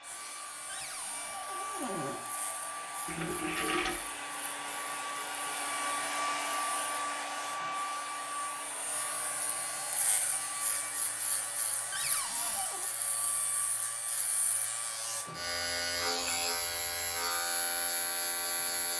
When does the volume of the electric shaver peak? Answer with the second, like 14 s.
16 s.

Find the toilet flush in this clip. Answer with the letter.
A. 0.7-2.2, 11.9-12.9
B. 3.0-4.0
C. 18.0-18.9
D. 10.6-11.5
B.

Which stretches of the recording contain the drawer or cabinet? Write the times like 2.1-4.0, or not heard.
0.7-2.2, 11.9-12.9.